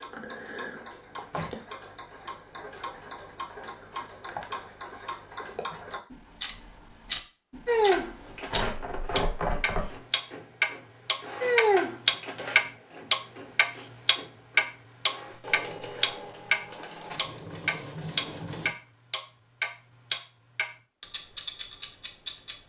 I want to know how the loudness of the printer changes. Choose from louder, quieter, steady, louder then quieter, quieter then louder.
louder then quieter.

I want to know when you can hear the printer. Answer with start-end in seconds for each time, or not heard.
7.7-18.7.